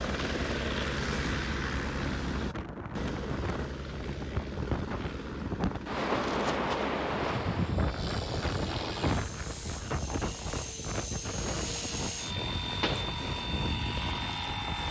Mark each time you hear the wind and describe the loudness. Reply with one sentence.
The wind can be heard from 0.1 to 14.8 s, getting louder then quieter.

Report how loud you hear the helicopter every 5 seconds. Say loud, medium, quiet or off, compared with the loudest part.
loud, medium, loud.